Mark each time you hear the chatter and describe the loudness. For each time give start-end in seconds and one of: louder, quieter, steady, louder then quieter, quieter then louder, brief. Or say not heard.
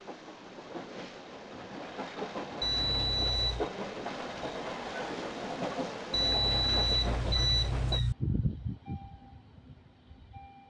not heard.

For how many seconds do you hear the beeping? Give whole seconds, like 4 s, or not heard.
3 s.